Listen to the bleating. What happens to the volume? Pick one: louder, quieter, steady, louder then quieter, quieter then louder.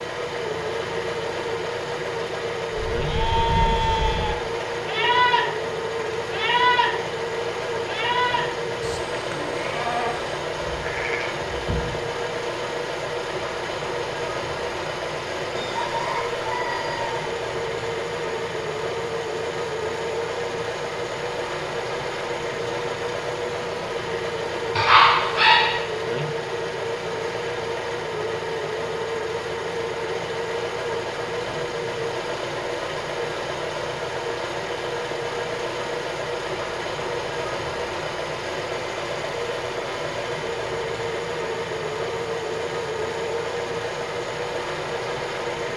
quieter.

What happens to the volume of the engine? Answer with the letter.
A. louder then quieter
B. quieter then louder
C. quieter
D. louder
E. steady
E.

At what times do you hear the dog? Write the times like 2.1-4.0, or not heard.
24.8-25.8.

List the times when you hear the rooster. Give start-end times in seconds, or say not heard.
15.5-17.2.